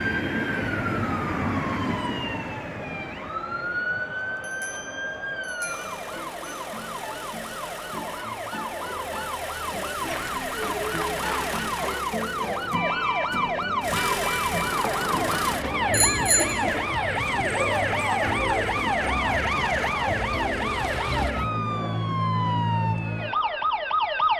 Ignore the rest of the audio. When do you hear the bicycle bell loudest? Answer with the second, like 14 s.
16 s.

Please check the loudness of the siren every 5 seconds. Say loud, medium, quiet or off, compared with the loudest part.
loud, medium, loud, loud, loud.